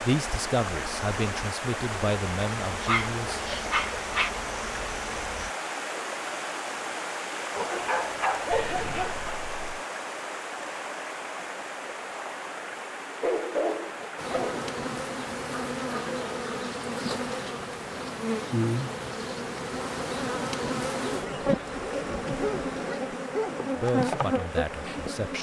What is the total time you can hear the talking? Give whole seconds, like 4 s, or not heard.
5 s.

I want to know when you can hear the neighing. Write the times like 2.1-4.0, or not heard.
8.5-9.8.